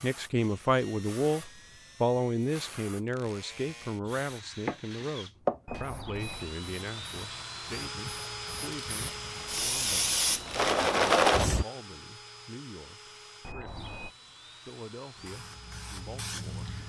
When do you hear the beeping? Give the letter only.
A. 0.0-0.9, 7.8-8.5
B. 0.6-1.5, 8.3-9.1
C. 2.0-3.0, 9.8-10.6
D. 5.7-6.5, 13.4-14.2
D.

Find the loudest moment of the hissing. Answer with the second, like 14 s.
11 s.